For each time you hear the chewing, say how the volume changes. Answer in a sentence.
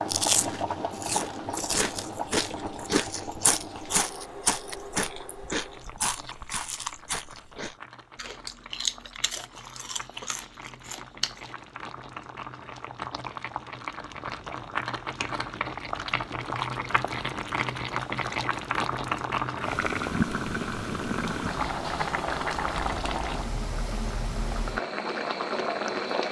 You can hear the chewing from 0.1 to 11.6 s, getting quieter.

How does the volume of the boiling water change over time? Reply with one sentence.
The volume of the boiling water goes down, then up.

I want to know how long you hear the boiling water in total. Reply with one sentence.
The boiling water can be heard for 26 seconds in total.